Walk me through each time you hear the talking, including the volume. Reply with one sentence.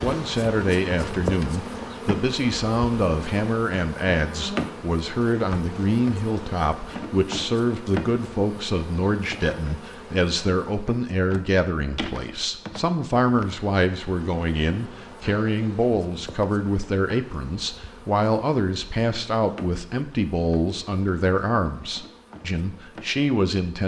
The talking can be heard from 0.0 to 23.8 s, at a steady volume.